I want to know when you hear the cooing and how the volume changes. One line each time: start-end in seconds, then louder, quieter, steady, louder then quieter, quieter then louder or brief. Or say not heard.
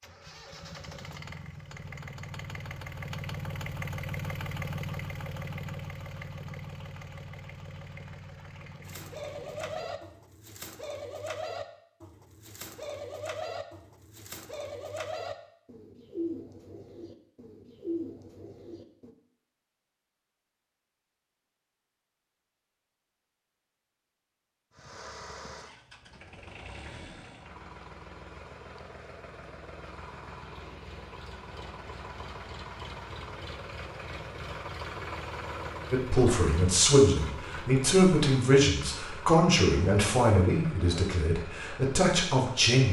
8.8-19.1 steady.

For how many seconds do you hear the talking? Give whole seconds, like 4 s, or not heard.
7 s.